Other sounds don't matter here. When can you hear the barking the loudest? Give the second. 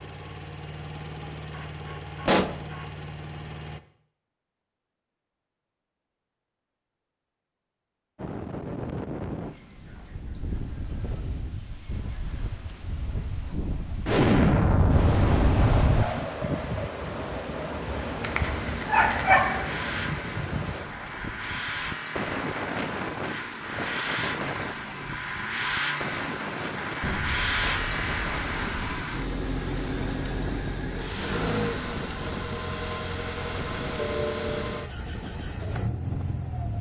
19 s.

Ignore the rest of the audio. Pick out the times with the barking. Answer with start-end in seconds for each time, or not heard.
18.2-19.6.